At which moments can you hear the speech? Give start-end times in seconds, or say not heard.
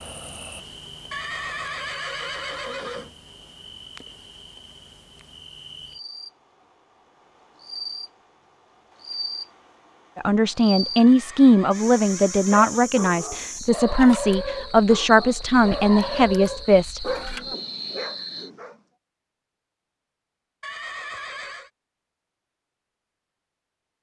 10.2-17.0.